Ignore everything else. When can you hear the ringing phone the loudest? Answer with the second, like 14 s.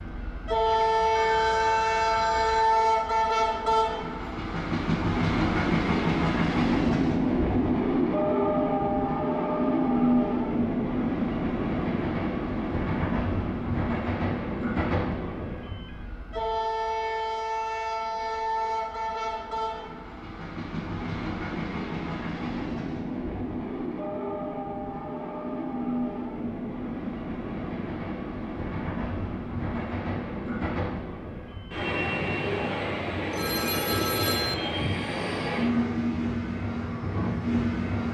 34 s.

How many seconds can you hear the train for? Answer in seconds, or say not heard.
38 s.